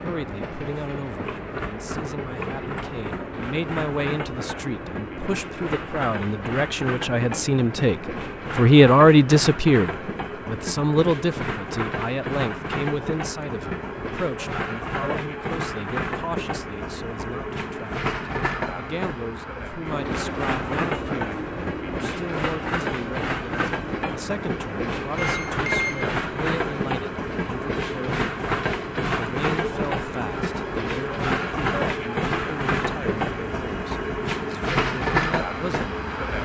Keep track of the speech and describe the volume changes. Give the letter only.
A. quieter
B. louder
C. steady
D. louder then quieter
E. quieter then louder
D.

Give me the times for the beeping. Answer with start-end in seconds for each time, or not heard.
25.1-26.1.